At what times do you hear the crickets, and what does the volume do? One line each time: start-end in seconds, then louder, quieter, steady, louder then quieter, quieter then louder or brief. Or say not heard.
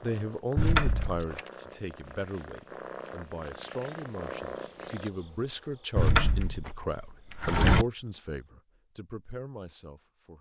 0.0-8.7 louder then quieter.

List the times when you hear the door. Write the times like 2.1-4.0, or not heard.
0.6-1.2, 6.0-7.8.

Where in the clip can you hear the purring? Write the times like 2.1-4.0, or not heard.
0.0-5.1.